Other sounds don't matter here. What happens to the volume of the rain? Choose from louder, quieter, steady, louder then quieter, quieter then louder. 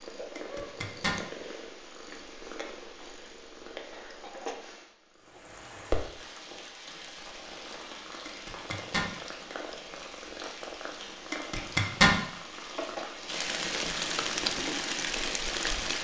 louder.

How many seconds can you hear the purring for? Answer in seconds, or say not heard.
16 s.